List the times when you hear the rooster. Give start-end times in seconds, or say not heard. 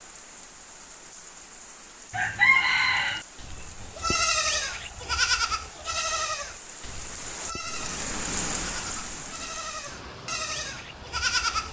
2.1-3.2.